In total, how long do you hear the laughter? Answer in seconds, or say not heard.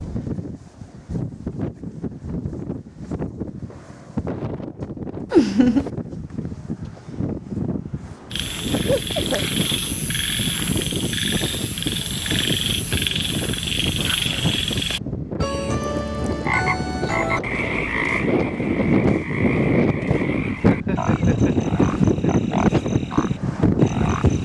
3 s.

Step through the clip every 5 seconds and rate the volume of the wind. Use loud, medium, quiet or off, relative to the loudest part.
medium, medium, medium, loud, loud.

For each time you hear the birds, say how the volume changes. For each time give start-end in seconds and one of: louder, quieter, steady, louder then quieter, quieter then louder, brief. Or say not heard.
not heard.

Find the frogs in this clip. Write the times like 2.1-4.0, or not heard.
8.3-24.4.